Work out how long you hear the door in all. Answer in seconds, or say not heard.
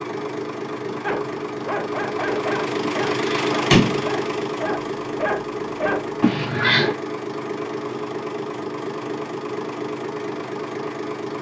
2 s.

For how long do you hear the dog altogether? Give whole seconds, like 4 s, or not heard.
5 s.